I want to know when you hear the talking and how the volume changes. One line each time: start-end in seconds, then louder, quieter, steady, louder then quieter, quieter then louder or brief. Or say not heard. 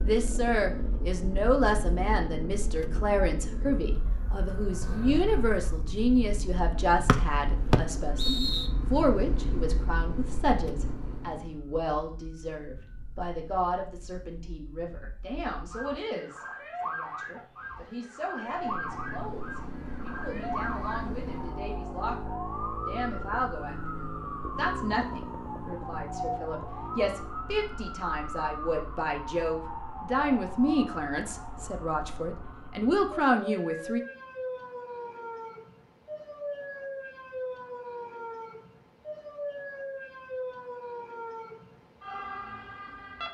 0.0-34.0 quieter then louder.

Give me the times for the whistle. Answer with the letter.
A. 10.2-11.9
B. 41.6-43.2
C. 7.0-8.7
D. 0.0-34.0
C.